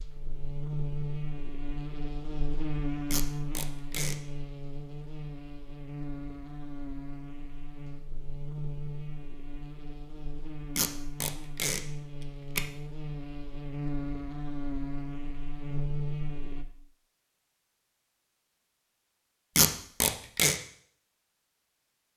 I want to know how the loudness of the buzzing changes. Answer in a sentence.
The loudness of the buzzing goes down, then up.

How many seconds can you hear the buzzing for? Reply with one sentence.
The buzzing can be heard for 17 seconds in total.